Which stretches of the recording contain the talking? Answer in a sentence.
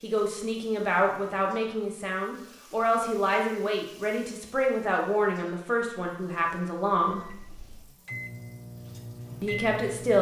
The talking can be heard from 0.0 to 7.2 s and from 9.4 to 10.1 s.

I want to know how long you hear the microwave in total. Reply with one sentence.
The microwave can be heard for 3 seconds in total.